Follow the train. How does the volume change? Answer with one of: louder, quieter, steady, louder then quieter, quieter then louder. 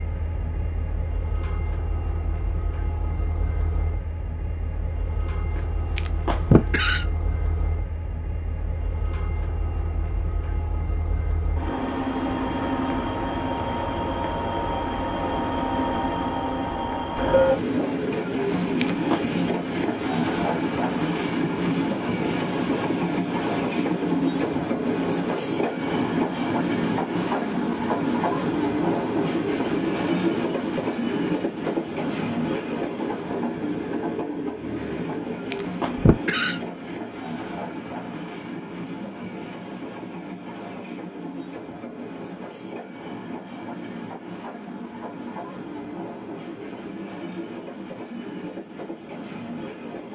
louder then quieter.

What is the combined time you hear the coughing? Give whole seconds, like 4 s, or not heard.
4 s.